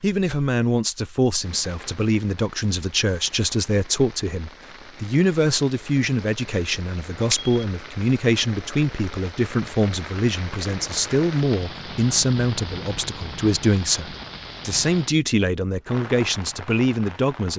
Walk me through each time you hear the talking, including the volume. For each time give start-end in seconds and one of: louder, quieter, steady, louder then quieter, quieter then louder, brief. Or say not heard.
0.0-17.5 steady.